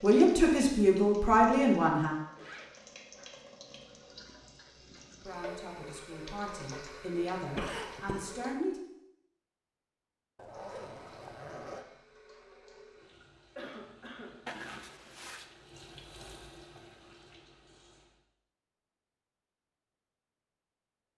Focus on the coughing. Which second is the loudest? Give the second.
8 s.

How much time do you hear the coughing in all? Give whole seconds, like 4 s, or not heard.
2 s.